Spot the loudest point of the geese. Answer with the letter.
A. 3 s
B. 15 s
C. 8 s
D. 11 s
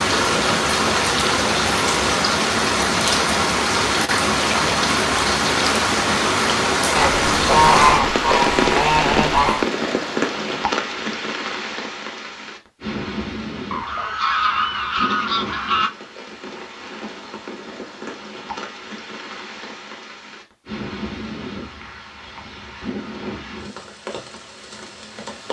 C.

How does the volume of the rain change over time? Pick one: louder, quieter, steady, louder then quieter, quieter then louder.
quieter.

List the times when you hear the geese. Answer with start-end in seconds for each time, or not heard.
7.0-9.7, 13.7-15.9.